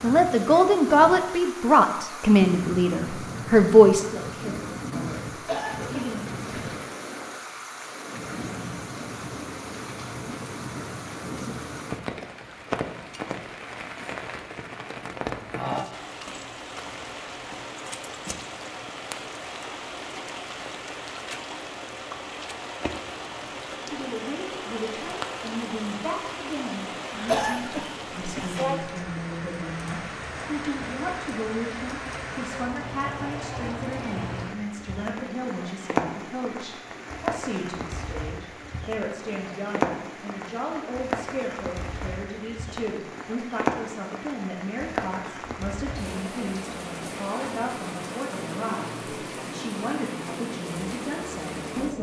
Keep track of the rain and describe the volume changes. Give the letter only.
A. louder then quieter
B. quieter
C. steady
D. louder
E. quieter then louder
C.